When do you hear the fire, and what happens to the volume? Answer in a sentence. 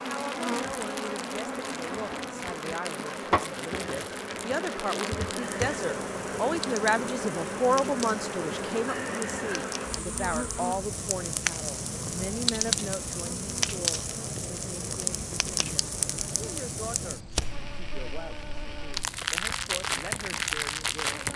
You can hear the fire from 0.0 to 21.3 s, getting louder.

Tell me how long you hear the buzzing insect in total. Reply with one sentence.
The buzzing insect can be heard for 21 seconds in total.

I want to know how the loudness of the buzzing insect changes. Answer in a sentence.
The loudness of the buzzing insect goes down.